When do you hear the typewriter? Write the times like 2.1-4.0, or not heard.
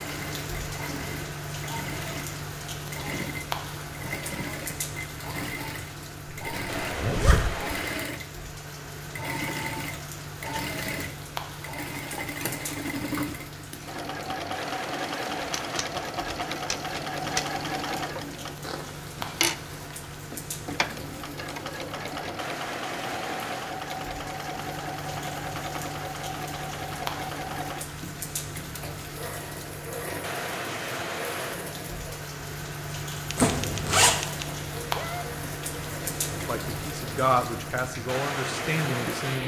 15.4-17.5, 33.2-35.2.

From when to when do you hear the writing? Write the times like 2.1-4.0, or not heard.
not heard.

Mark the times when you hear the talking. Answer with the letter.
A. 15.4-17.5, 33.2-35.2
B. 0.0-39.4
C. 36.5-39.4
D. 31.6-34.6
C.